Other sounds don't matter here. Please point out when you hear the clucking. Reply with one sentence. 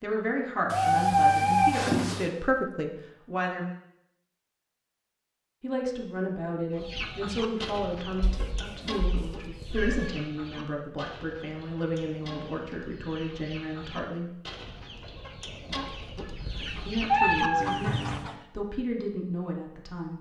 You can hear the clucking from 6.8 to 18.4 s.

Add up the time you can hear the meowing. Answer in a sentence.
The meowing can be heard for 5 seconds in total.